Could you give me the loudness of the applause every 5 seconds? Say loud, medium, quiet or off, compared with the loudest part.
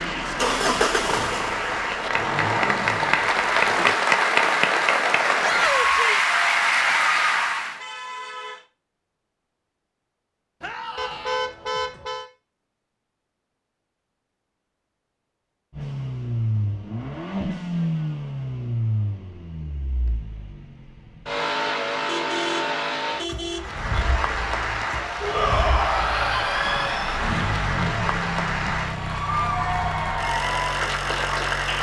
loud, loud, off, off, medium, medium, medium.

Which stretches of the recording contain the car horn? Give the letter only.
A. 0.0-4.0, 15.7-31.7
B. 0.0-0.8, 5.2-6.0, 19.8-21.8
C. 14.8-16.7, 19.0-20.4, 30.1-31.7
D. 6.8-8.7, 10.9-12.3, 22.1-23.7
D.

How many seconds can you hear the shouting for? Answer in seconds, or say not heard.
4 s.